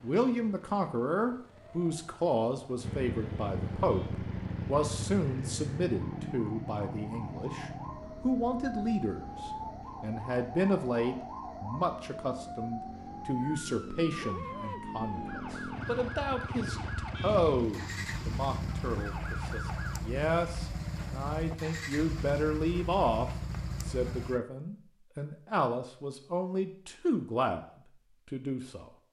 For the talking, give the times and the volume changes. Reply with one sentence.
The talking can be heard from 0.0 to 27.6 s, at a steady volume; and briefly from 28.3 to 28.9 s.